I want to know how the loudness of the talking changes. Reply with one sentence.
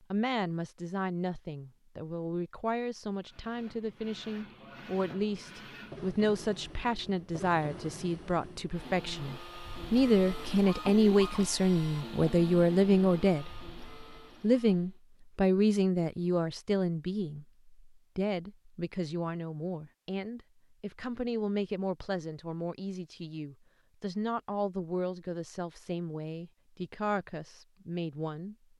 The loudness of the talking goes up, then down.